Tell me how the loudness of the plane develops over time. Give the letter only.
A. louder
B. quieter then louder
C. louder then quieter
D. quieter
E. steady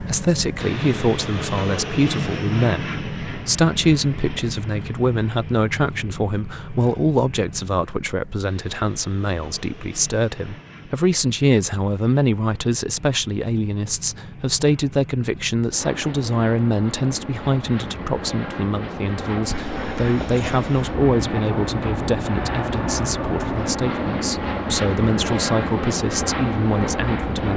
B.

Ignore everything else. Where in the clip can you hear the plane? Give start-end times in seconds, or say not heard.
0.0-27.5.